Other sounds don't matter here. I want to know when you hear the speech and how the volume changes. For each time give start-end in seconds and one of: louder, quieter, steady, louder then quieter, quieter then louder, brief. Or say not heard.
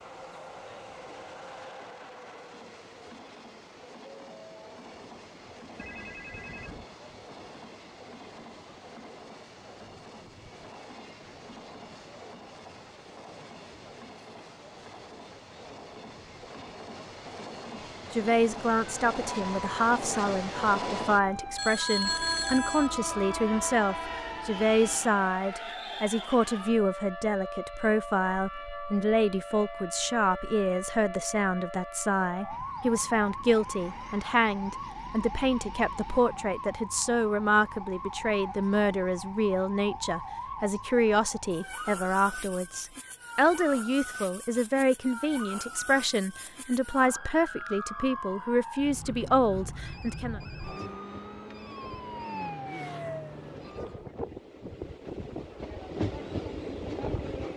18.1-50.4 steady.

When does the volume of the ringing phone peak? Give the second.
22 s.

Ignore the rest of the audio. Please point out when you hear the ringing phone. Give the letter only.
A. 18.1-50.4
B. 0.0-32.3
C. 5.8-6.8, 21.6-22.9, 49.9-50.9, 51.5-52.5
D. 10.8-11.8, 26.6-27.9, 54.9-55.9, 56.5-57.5
C.